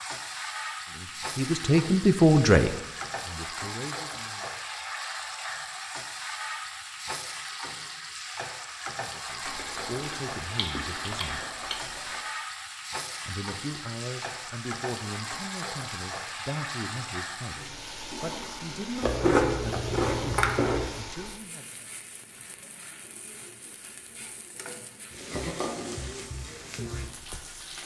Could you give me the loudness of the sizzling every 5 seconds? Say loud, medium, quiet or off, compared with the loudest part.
loud, loud, loud, loud, medium, loud.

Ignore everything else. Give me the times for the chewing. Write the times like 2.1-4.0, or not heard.
9.4-12.2, 19.0-20.9.